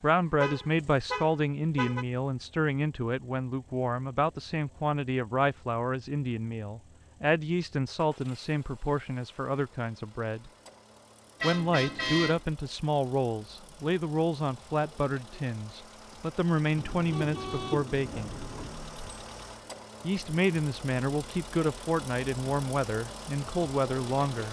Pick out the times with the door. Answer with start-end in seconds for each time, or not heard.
18.1-19.2.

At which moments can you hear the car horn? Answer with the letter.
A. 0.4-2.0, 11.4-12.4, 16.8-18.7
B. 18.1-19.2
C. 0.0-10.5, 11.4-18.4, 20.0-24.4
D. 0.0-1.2
A.